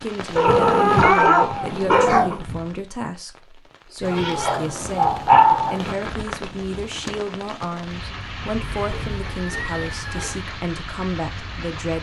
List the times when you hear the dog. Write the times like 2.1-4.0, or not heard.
0.3-2.4, 4.4-5.8, 8.4-10.4.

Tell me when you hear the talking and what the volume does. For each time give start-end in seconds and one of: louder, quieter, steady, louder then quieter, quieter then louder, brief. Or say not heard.
0.0-11.9 steady.